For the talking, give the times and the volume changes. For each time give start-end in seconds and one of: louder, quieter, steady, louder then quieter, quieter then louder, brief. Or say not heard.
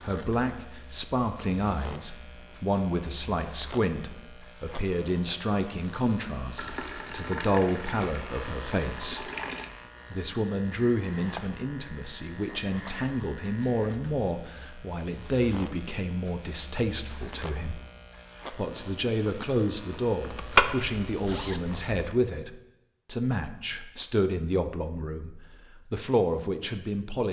0.0-9.2 steady
10.1-17.8 steady
18.5-27.2 steady.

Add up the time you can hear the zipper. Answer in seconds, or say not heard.
2 s.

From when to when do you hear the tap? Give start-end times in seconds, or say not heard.
6.5-9.7.